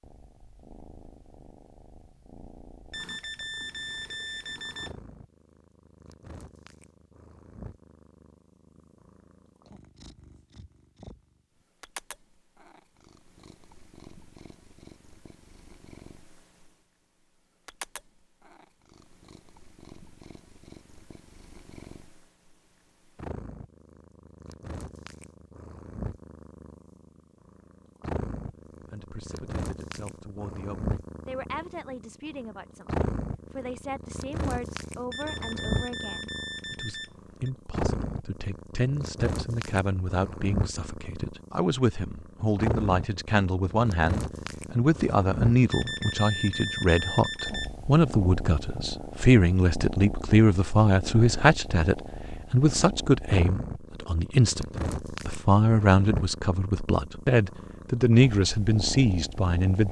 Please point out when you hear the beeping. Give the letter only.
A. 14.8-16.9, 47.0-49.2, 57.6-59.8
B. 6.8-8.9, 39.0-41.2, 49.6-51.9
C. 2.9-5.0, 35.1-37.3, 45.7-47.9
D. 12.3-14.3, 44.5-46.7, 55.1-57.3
C.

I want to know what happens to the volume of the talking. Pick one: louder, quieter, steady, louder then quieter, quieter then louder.
louder.